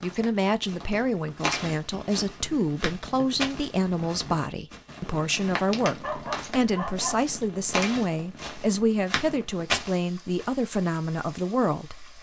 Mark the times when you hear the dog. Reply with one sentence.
The dog can be heard from 6.0 to 7.2 s.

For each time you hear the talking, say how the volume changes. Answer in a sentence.
You can hear the talking from 0.0 to 12.1 s, at a steady volume.